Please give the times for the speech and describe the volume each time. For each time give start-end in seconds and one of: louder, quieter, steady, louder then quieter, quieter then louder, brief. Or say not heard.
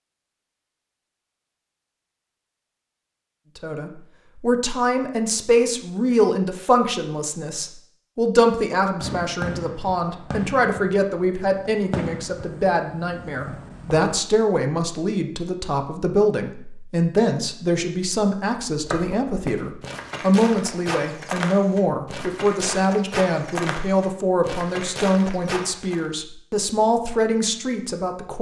3.5-28.3 steady.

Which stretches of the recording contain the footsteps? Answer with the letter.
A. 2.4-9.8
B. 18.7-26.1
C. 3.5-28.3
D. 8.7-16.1
B.